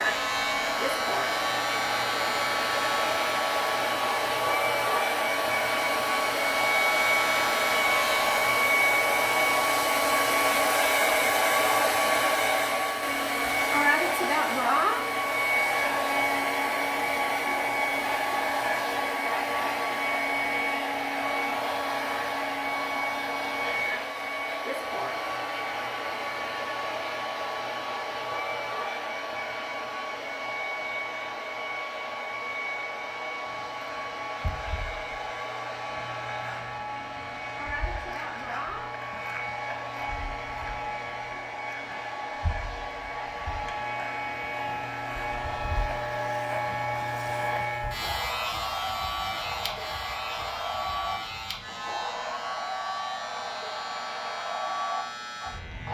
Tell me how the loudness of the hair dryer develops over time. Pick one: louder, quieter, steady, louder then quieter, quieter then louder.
quieter.